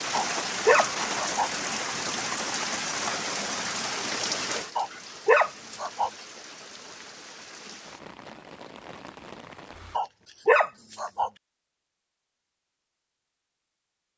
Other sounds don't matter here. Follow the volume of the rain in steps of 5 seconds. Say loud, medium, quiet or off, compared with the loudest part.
loud, quiet, off.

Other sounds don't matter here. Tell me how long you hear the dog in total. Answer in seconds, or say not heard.
4 s.